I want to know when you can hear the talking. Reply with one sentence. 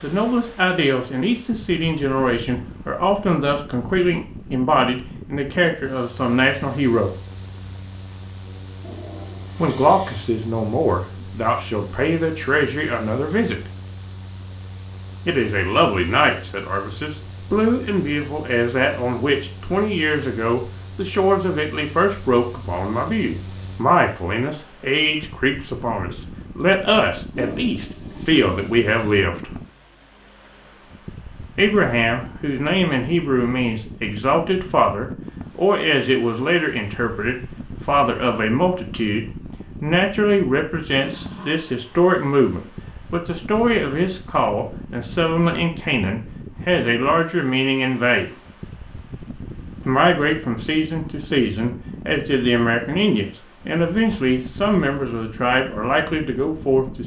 The talking can be heard from 0.0 to 7.2 s, from 9.6 to 13.6 s, from 15.2 to 29.6 s, from 31.6 to 48.3 s and from 49.9 to 57.0 s.